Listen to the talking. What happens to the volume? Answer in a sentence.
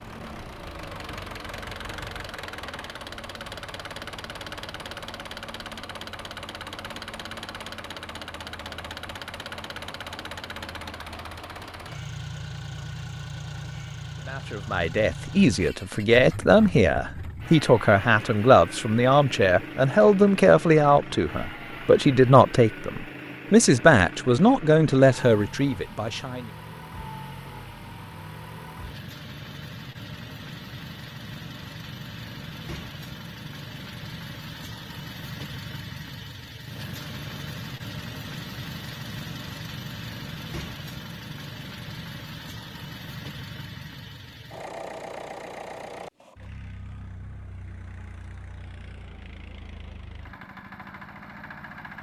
The loudness of the talking stays about the same.